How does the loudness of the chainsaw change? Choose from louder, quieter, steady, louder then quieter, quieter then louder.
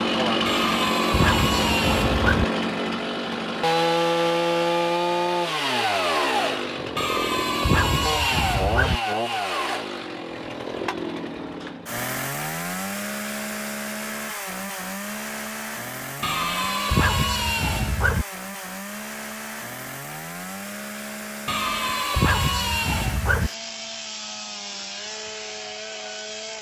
quieter.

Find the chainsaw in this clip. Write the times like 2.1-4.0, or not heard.
0.0-26.5.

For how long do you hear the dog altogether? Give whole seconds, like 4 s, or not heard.
8 s.